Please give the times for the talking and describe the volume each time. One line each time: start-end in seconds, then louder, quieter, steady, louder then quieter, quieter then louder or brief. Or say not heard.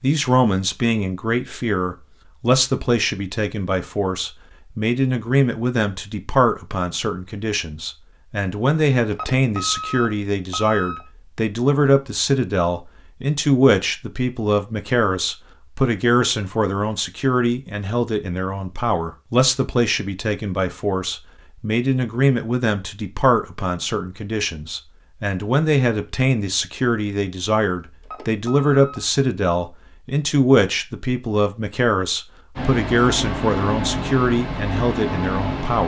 0.0-35.8 steady.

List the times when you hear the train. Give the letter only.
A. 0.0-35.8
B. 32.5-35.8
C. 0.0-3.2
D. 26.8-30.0
B.